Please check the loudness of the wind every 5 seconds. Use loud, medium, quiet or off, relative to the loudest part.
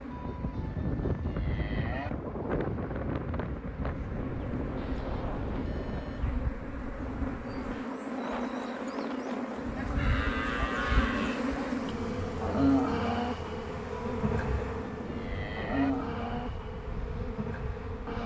loud, medium, medium, medium.